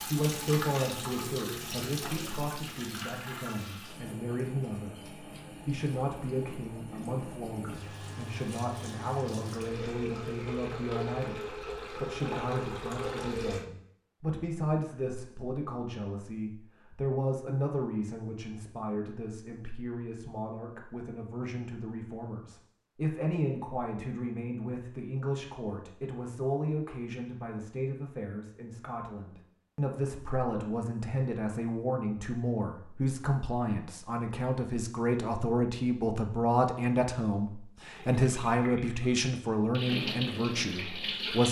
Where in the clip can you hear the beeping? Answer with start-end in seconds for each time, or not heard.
not heard.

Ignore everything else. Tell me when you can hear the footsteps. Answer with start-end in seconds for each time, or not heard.
not heard.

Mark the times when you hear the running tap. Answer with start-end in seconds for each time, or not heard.
0.0-13.7, 38.0-41.4.